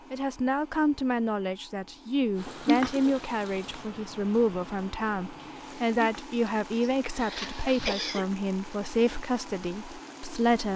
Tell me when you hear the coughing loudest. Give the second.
3 s.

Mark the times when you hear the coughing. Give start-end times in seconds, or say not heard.
2.6-3.1, 6.0-8.2.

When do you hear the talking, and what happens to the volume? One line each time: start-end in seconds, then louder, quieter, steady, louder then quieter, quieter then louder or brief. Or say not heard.
0.1-10.7 steady.